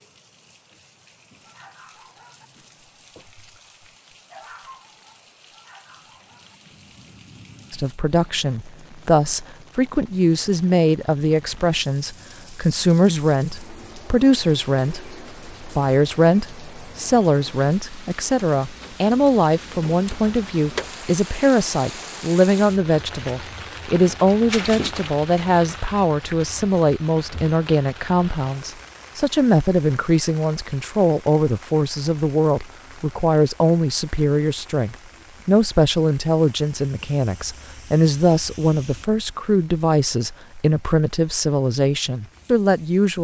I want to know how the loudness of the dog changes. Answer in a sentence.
The loudness of the dog goes up, then down.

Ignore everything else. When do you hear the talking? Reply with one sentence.
The talking can be heard from 7.7 to 43.2 s.